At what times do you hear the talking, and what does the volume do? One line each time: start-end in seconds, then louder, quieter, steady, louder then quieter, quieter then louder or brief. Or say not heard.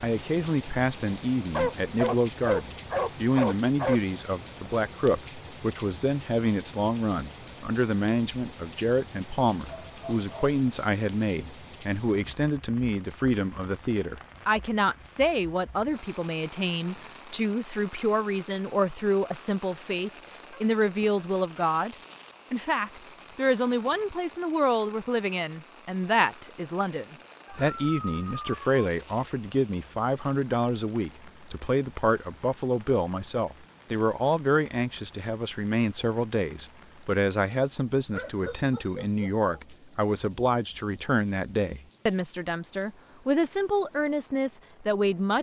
0.0-45.3 steady.